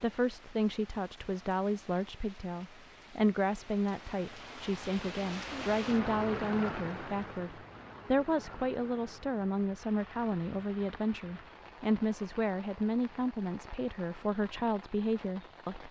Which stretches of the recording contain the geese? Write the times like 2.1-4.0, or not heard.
not heard.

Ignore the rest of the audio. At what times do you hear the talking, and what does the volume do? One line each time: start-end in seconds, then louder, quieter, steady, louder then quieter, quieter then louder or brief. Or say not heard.
0.0-15.8 steady.